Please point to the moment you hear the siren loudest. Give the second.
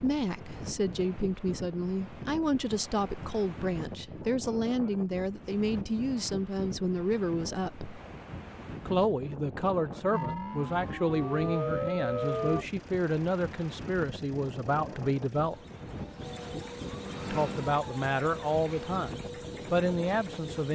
12 s.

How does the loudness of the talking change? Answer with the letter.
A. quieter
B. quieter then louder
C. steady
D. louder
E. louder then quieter
C.